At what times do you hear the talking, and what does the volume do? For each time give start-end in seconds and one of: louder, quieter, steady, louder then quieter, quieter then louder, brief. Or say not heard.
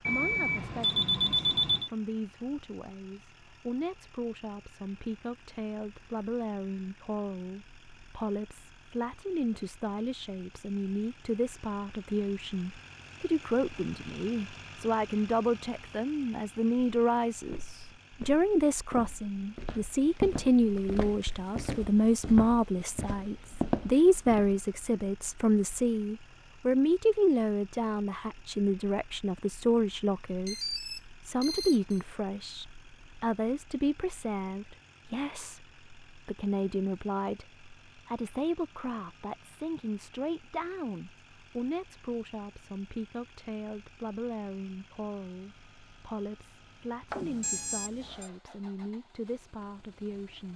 0.0-50.5 louder then quieter.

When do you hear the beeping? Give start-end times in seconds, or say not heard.
0.1-1.9, 30.4-32.0, 47.1-48.3.